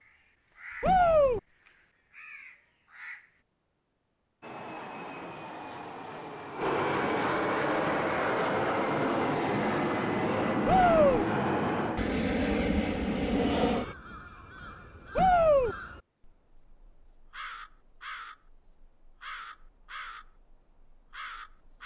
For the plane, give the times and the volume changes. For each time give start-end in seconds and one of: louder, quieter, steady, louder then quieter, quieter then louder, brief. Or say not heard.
4.4-13.9 louder.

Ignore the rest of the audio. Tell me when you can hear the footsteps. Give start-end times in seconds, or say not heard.
not heard.